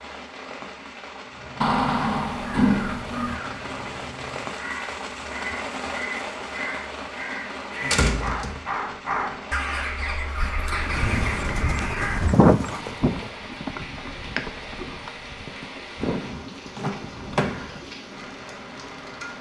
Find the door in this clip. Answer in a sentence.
You can hear the door from 1.6 to 3.4 s, from 7.8 to 8.6 s and from 16.8 to 17.8 s.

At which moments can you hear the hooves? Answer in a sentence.
The hooves can be heard from 10.7 to 17.9 s.